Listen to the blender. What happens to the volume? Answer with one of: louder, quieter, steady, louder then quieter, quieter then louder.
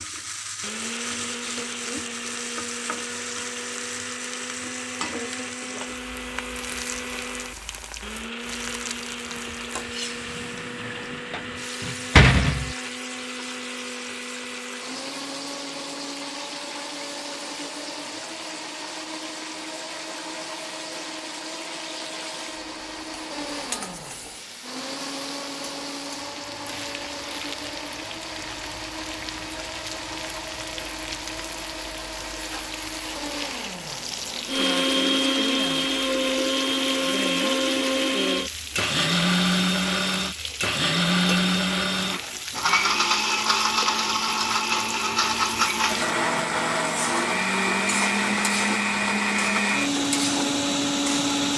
louder.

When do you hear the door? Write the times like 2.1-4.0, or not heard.
10.8-12.8.